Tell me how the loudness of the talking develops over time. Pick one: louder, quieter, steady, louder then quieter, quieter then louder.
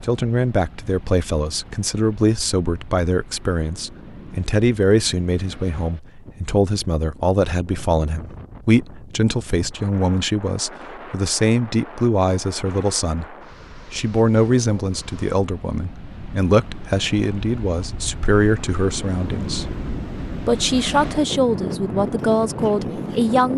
steady.